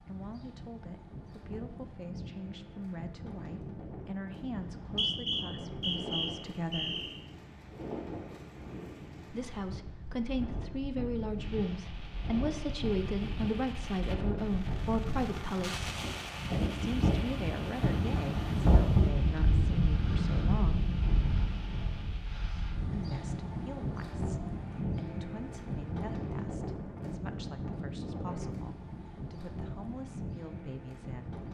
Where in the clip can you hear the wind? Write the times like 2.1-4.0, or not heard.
0.0-31.4.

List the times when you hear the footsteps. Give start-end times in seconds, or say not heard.
not heard.